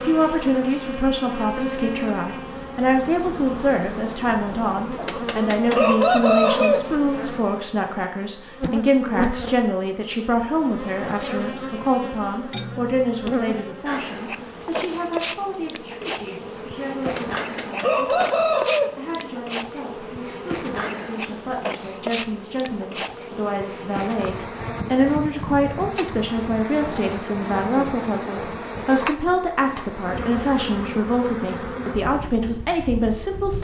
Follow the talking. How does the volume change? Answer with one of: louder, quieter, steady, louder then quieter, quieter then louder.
quieter then louder.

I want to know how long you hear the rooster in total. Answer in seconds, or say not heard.
4 s.